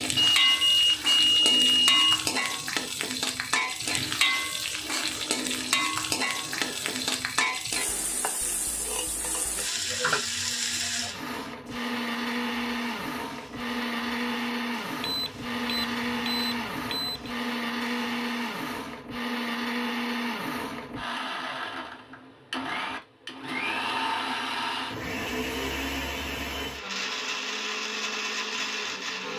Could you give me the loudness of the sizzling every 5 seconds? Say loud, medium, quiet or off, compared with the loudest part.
loud, loud, medium, quiet, off, off.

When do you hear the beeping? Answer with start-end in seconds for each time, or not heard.
0.1-2.2, 15.0-17.3.